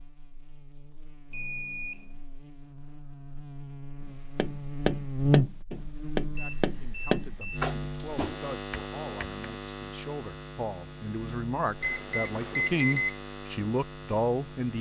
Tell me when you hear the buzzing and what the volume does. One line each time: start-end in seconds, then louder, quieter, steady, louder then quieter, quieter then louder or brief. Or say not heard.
0.0-14.7 louder then quieter.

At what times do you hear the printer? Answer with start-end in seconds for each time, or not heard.
not heard.